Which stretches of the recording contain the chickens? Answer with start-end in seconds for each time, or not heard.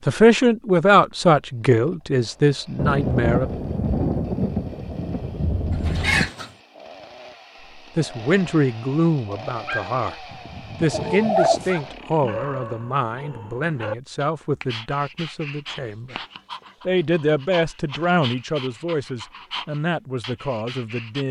5.8-6.5, 10.8-11.7.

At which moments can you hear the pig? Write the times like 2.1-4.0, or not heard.
not heard.